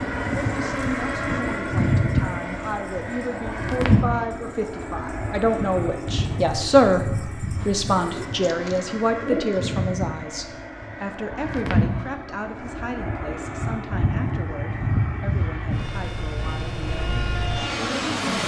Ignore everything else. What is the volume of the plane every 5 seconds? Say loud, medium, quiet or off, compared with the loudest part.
loud, medium, loud, loud.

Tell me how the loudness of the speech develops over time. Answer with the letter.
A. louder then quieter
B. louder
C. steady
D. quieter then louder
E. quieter
A.